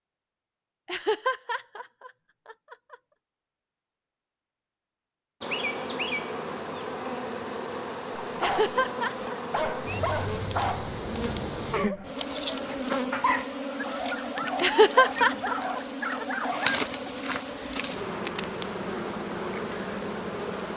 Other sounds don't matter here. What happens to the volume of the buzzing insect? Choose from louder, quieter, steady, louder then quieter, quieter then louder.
steady.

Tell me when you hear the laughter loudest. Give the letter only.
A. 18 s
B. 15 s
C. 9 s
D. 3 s
B.